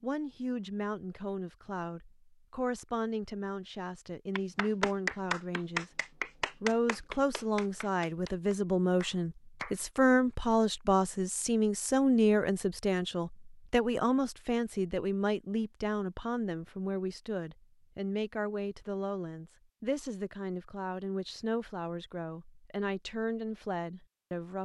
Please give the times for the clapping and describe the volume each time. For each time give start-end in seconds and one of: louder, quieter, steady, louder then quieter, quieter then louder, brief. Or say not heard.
4.3-9.8 quieter.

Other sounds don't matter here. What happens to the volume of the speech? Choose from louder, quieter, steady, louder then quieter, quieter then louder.
louder then quieter.